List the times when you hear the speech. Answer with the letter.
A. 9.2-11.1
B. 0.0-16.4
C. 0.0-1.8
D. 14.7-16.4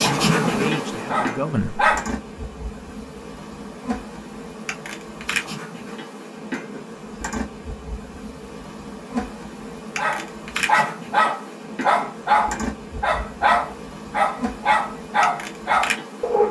C.